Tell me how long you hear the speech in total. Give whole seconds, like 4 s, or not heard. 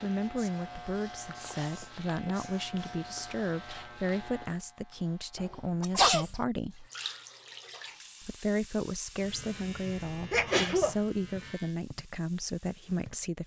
12 s.